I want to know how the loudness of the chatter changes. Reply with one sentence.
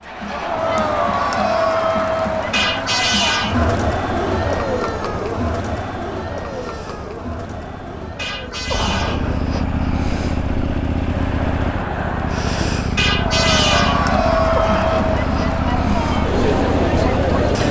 The loudness of the chatter goes down, then up.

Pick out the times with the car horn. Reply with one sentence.
The car horn can be heard from 2.5 to 3.8 s, from 8.2 to 9.3 s and from 12.9 to 14.1 s.